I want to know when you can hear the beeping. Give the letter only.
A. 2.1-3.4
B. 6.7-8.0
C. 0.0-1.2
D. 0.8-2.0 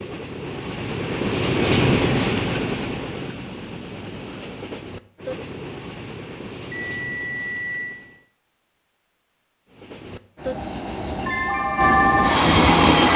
B.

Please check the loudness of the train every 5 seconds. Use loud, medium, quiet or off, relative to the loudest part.
medium, quiet, loud.